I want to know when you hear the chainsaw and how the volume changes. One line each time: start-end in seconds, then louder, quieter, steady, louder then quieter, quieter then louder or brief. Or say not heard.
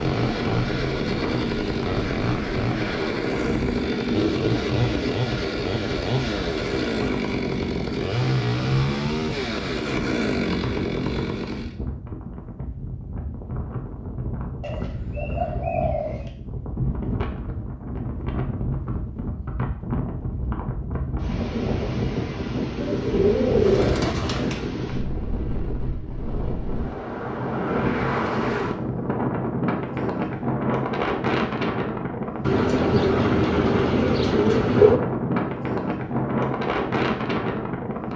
0.0-11.8 steady.